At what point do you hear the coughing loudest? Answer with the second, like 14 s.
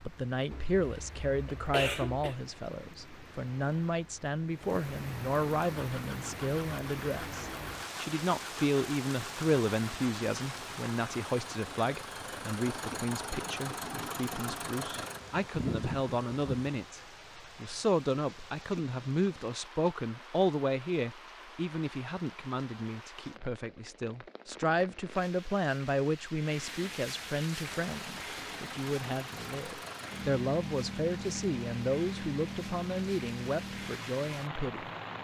2 s.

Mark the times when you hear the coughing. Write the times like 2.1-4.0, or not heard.
0.5-2.4.